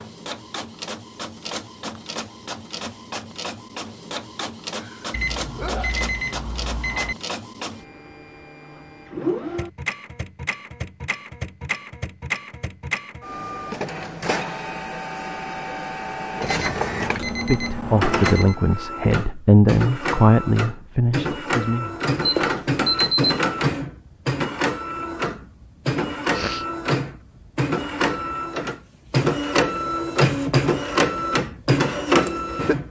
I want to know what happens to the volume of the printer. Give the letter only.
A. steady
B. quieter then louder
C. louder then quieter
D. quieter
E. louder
E.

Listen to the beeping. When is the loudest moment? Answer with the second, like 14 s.
23 s.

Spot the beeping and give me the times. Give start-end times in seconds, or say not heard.
5.1-7.2, 16.4-18.6, 22.2-23.4.